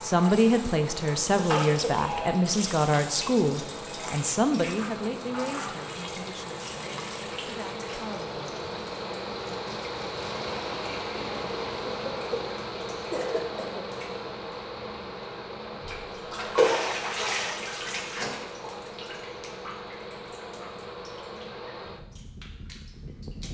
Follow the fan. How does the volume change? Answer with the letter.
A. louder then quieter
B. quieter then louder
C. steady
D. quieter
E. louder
A.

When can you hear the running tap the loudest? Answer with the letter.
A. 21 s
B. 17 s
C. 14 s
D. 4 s
B.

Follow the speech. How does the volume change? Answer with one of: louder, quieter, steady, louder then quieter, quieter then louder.
quieter.